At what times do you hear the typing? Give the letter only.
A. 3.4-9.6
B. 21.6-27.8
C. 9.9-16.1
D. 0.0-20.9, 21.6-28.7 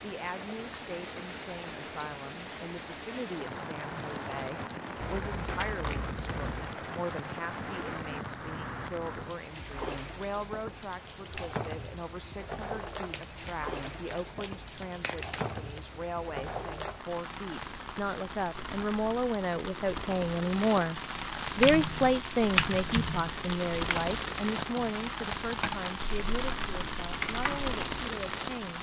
B.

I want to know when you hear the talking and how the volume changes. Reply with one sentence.
You can hear the talking from 0.0 to 20.9 s, getting louder; and from 21.6 to 28.7 s, getting quieter.